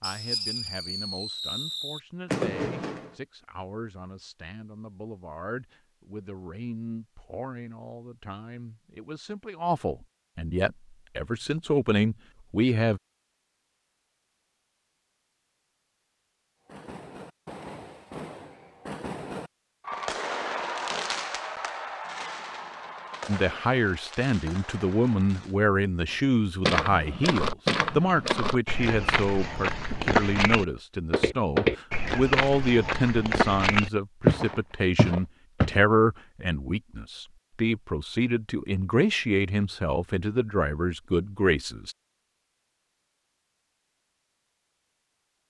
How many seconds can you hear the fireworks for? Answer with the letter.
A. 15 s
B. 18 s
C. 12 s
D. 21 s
C.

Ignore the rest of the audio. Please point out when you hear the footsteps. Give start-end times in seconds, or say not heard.
26.6-35.8.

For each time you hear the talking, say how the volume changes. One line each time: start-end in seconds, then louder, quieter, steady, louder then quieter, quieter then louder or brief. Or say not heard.
0.0-13.0 louder
23.2-42.0 steady.